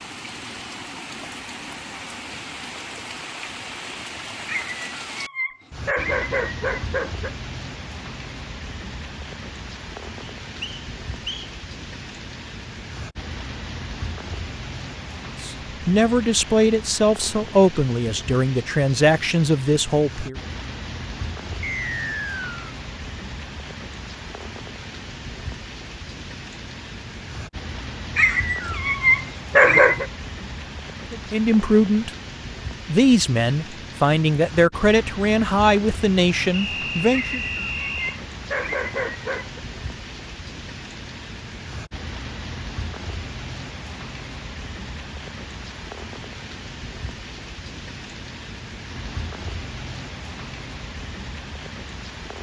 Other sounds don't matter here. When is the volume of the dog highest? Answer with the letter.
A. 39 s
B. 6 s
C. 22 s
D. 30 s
D.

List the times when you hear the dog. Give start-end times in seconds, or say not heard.
4.5-7.3, 28.1-30.1, 37.1-39.6.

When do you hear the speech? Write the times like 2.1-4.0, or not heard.
15.4-20.4, 31.1-32.1, 32.9-37.4.